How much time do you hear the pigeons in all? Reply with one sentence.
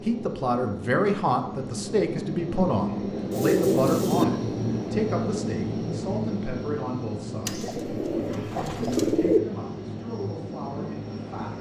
You can hear the pigeons for 3 seconds altogether.